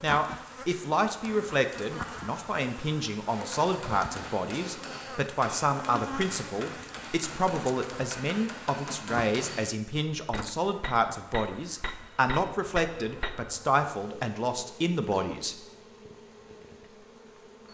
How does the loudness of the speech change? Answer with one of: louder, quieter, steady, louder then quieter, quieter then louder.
steady.